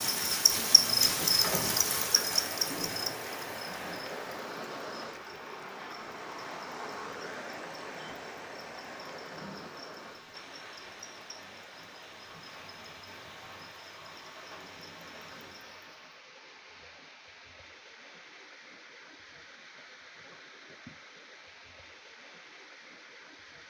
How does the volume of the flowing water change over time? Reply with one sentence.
The loudness of the flowing water goes down.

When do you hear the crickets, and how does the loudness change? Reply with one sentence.
The crickets can be heard from 0.0 to 16.2 s, getting quieter.